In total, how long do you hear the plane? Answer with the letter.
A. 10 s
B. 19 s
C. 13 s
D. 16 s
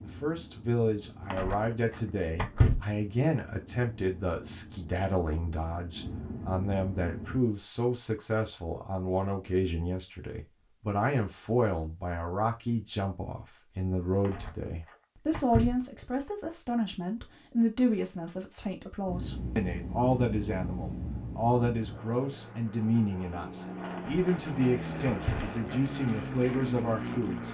D.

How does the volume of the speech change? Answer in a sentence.
The loudness of the speech stays about the same.